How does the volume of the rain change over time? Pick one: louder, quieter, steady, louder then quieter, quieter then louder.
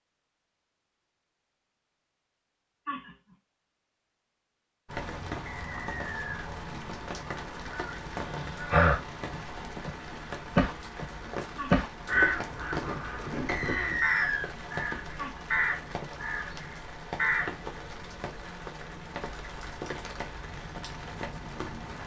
steady.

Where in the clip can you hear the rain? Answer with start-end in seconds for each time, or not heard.
4.8-22.0.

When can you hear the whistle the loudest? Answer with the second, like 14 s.
14 s.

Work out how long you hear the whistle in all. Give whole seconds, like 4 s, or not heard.
2 s.